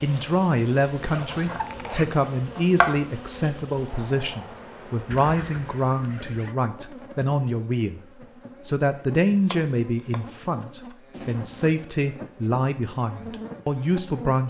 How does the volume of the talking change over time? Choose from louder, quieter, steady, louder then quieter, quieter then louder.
steady.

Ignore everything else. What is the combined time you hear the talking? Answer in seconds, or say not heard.
14 s.